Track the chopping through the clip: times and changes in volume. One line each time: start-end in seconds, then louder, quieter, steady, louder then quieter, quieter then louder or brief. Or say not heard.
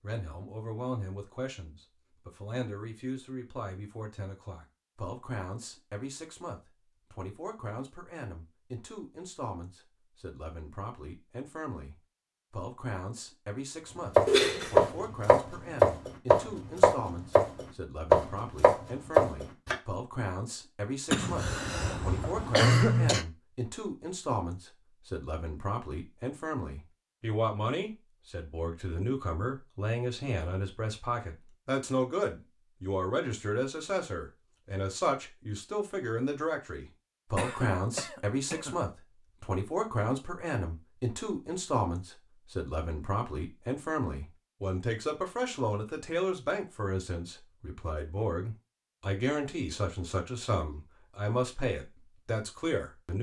14.2-19.8 steady.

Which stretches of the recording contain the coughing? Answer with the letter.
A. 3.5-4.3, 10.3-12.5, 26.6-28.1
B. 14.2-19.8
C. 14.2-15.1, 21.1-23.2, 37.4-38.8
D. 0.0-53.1
C.